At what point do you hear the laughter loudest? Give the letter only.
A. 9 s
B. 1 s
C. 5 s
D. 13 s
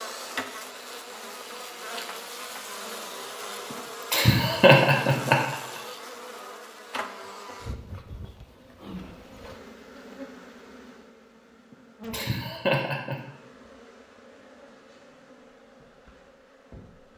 C.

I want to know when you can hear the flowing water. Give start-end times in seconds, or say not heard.
not heard.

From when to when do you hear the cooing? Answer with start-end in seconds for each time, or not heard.
not heard.